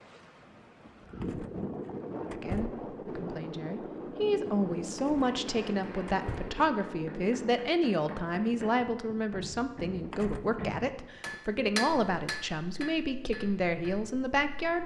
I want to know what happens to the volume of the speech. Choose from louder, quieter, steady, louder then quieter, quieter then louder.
steady.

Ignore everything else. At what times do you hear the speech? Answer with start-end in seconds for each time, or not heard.
2.2-14.8.